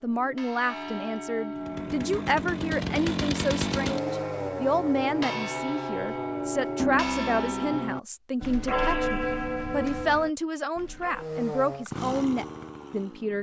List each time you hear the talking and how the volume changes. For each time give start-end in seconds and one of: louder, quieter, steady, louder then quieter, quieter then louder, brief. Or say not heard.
0.0-13.3 steady.